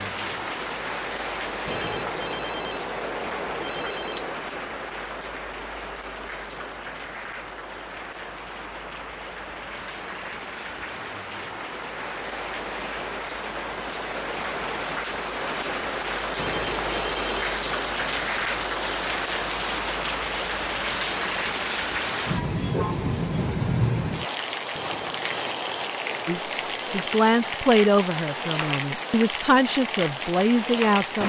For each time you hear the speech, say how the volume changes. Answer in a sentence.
The speech can be heard from 26.2 to 31.2 s, getting quieter then louder.